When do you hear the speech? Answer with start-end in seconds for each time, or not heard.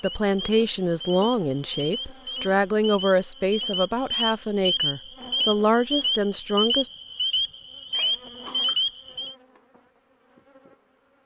0.0-6.9.